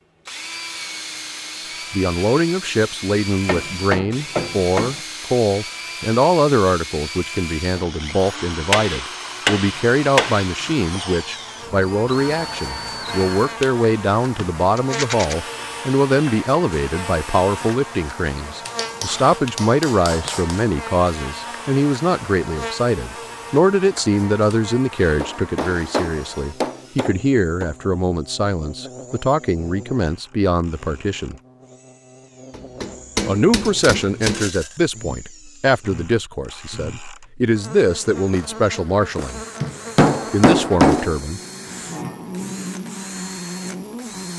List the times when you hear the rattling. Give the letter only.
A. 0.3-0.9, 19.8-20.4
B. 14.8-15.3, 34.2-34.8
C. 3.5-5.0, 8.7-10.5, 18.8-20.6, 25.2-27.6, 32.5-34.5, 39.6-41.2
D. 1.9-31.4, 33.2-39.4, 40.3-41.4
B.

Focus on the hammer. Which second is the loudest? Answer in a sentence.
The volume of the hammer peaks at 41 seconds.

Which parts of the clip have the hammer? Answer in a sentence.
You can hear the hammer from 3.5 to 5.0 s, from 8.7 to 10.5 s, from 18.8 to 20.6 s, from 25.2 to 27.6 s, from 32.5 to 34.5 s and from 39.6 to 41.2 s.